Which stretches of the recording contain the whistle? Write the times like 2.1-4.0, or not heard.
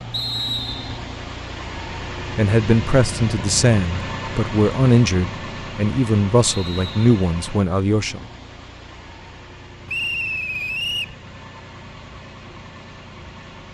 0.1-1.0, 6.6-7.1, 9.8-11.2.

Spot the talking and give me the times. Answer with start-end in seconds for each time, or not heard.
2.4-8.2.